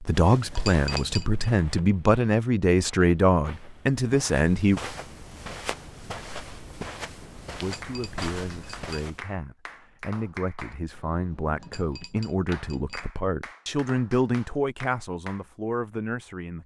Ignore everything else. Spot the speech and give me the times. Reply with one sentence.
The speech can be heard from 0.0 to 4.8 s and from 7.6 to 16.6 s.